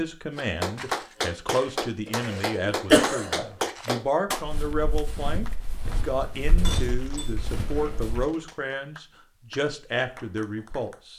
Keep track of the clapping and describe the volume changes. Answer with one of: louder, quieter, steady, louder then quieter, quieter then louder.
quieter.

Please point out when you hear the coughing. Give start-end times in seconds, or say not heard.
2.0-3.5.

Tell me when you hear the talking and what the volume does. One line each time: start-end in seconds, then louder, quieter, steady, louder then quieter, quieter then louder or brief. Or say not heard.
0.0-11.1 steady.